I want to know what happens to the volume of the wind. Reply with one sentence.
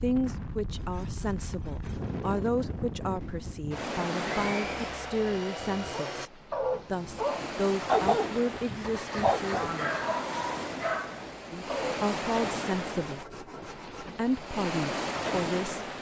The volume of the wind stays about the same.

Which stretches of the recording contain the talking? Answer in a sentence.
You can hear the talking from 0.0 to 9.7 s, from 11.5 to 13.2 s and from 14.0 to 15.8 s.